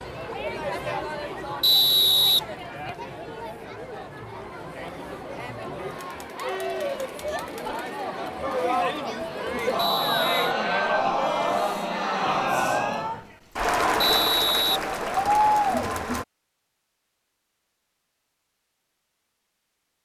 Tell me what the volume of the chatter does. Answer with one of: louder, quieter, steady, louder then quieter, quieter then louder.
louder.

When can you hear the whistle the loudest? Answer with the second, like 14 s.
2 s.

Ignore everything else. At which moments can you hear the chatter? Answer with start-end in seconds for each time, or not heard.
0.0-16.2.